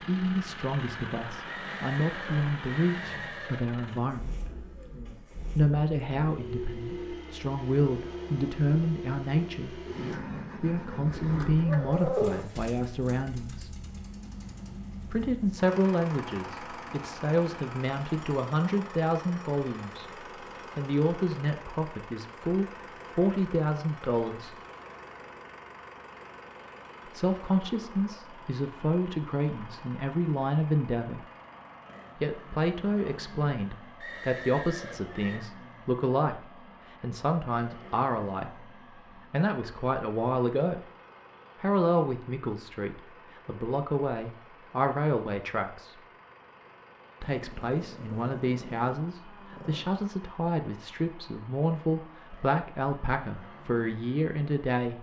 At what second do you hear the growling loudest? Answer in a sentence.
The loudest moment of the growling is at 12 seconds.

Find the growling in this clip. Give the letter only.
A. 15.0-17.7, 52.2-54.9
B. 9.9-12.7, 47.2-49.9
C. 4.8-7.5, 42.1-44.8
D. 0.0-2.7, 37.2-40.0
B.